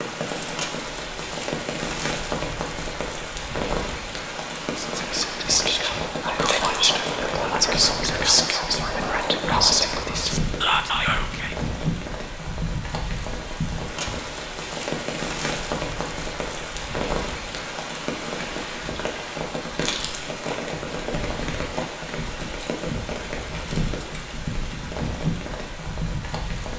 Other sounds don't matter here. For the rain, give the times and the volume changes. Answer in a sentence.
The rain can be heard from 0.0 to 26.7 s, at a steady volume.